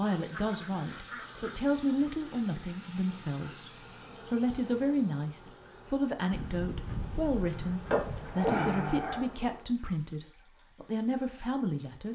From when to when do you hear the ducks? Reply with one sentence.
You can hear the ducks from 0.1 to 1.6 s and from 6.3 to 8.3 s.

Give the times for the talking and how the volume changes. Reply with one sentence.
The talking can be heard from 0.0 to 12.0 s, at a steady volume.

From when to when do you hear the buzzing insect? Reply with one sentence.
You can hear the buzzing insect from 3.6 to 9.7 s.